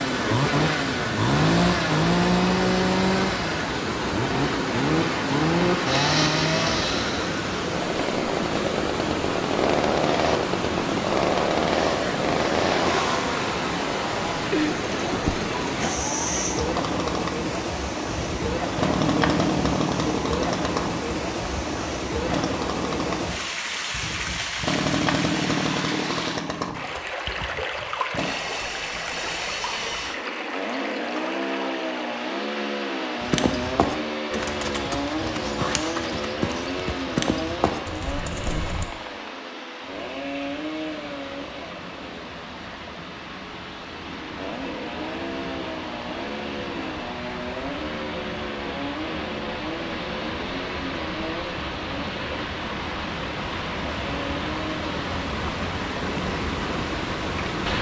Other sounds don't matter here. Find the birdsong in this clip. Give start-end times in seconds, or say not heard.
not heard.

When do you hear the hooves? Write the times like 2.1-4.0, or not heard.
33.2-38.9.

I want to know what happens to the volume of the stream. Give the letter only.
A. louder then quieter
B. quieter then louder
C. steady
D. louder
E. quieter
B.